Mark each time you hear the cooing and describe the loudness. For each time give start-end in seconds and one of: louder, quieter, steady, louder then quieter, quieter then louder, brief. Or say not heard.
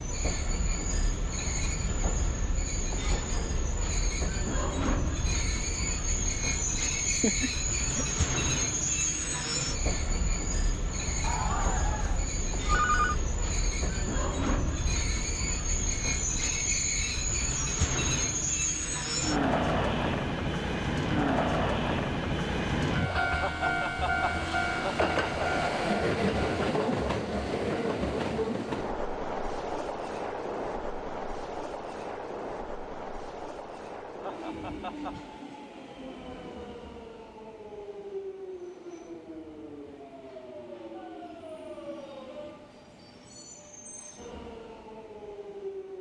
not heard.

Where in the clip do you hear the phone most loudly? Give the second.
13 s.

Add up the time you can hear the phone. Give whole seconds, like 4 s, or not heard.
2 s.